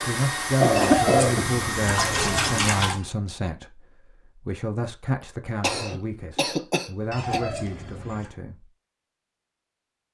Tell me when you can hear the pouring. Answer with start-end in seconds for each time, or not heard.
0.8-3.0, 7.1-8.3.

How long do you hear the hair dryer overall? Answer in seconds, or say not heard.
3 s.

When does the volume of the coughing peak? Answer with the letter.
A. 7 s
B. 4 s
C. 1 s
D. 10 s
C.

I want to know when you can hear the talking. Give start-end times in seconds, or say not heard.
0.0-8.7.